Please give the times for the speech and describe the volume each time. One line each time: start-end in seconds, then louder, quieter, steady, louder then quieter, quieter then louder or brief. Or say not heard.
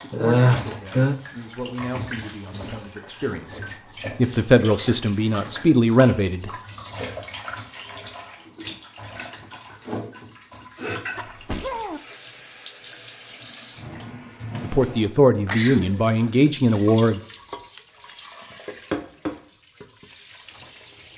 0.0-6.5 louder
14.6-17.2 brief.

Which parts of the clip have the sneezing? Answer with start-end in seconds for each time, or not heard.
0.1-1.1, 11.2-12.0, 15.3-15.9.